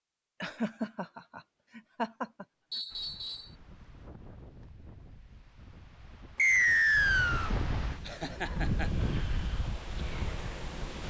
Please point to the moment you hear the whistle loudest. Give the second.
7 s.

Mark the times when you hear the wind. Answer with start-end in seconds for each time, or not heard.
2.9-11.0.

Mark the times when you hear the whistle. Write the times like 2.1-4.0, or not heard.
2.7-3.5, 6.3-7.5.